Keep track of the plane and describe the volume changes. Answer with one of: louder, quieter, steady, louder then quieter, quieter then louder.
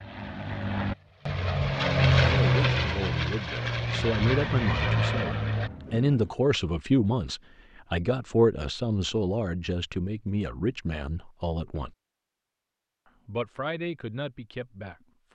louder then quieter.